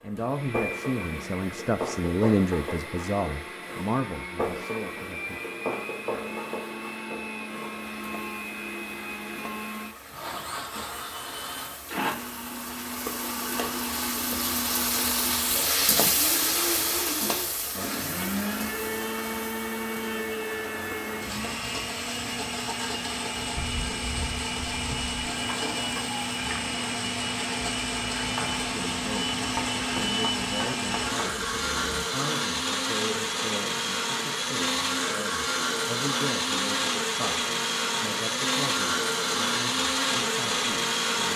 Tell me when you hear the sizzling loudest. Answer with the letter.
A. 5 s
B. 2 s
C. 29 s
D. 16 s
D.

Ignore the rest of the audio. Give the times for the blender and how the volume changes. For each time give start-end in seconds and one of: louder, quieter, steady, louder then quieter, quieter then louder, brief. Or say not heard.
0.0-41.3 louder.